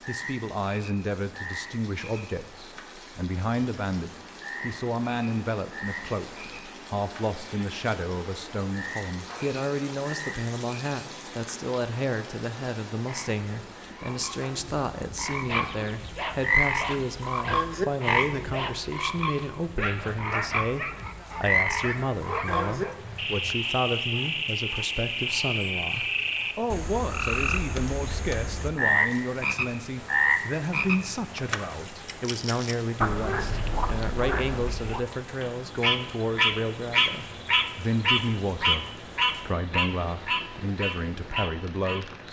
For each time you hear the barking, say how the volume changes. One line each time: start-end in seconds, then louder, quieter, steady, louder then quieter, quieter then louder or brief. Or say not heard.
15.4-23.6 steady.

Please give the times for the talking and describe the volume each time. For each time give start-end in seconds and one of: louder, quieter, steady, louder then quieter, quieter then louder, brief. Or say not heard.
0.1-42.2 steady.